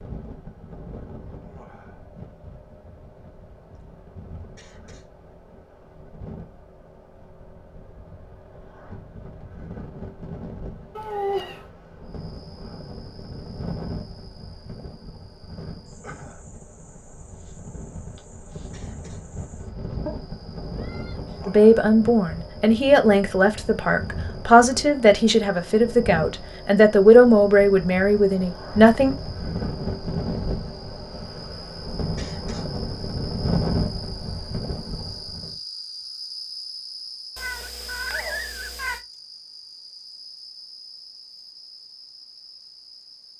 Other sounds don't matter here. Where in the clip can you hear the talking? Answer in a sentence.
You can hear the talking from 21.4 to 29.1 s.